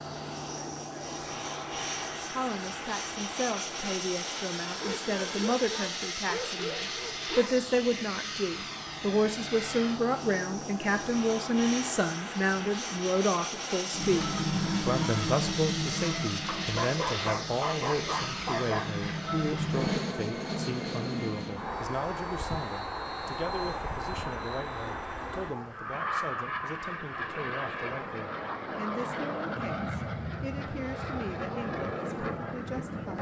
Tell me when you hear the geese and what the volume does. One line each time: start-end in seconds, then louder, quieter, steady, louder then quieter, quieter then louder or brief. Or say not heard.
13.9-20.0 quieter then louder.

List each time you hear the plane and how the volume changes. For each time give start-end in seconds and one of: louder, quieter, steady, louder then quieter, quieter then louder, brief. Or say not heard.
0.0-33.1 steady.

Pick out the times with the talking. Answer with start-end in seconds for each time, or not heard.
2.3-33.1.